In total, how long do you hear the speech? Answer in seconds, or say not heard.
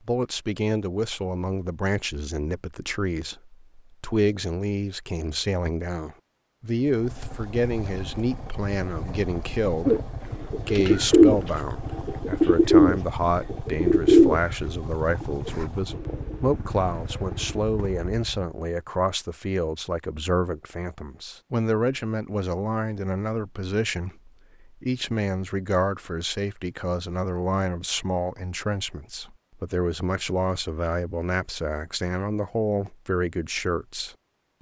34 s.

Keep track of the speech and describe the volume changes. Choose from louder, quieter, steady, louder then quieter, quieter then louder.
steady.